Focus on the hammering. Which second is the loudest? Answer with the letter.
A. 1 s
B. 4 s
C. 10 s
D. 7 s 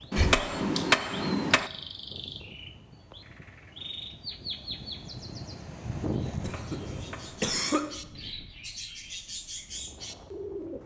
A.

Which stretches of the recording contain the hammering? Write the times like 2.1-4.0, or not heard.
0.1-1.7, 6.3-7.9.